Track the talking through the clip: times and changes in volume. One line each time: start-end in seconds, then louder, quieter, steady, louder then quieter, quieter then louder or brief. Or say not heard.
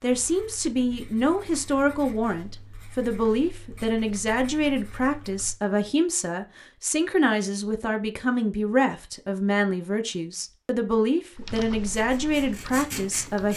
0.0-13.5 steady.